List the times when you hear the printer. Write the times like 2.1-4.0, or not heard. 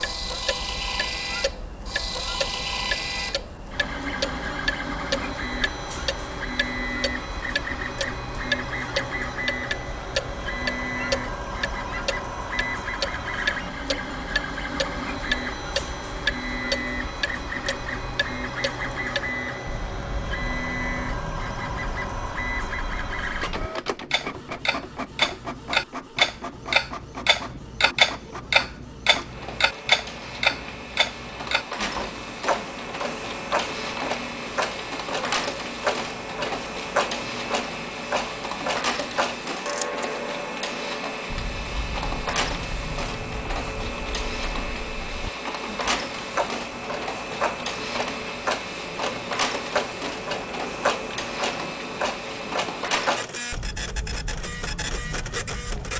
0.0-55.9.